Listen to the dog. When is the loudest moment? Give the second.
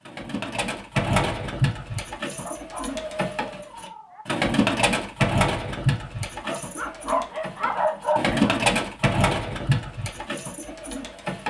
8 s.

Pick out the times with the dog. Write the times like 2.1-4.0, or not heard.
2.4-4.2, 6.4-8.6.